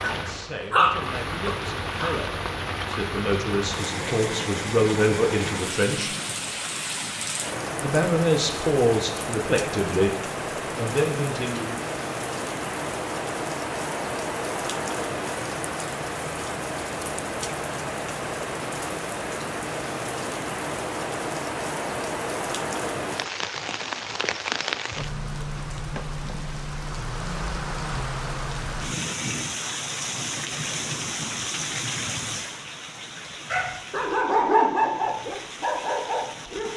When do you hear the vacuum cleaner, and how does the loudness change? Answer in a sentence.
The vacuum cleaner can't be heard in this clip.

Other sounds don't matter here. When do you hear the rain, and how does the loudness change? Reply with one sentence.
The rain can be heard from 0.0 to 36.7 s, at a steady volume.